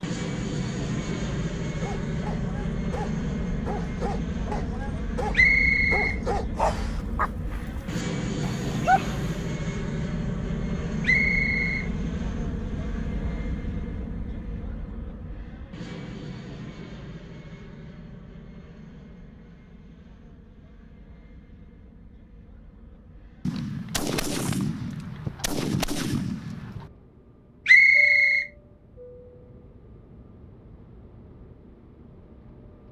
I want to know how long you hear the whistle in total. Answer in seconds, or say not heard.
3 s.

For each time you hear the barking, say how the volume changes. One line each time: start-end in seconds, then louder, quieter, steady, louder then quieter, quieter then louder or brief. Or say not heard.
1.8-9.2 louder then quieter.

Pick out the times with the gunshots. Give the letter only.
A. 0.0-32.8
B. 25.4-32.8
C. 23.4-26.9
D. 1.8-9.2
C.